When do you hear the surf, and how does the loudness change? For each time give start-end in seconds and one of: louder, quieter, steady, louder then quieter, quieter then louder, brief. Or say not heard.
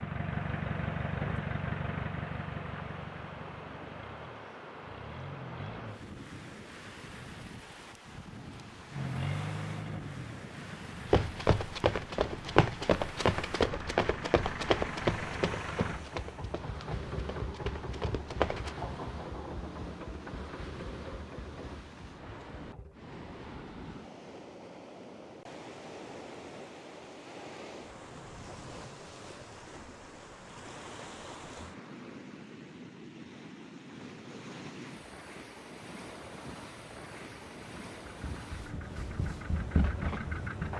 0.0-40.7 steady.